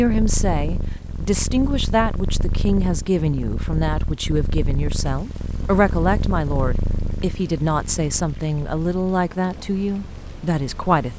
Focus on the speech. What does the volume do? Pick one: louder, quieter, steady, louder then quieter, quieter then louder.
steady.